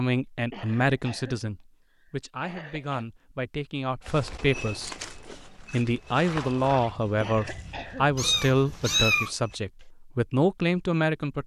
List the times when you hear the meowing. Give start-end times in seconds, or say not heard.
8.2-9.3.